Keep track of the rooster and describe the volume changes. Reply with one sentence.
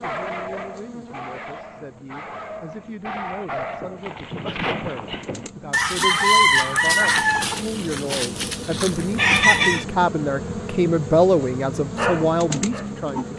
The loudness of the rooster goes down, then up.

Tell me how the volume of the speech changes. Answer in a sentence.
The loudness of the speech goes up.